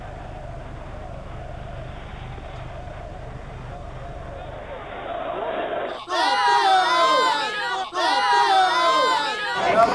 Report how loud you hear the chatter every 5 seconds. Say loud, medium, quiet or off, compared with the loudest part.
quiet, loud.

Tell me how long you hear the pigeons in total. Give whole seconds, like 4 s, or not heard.
not heard.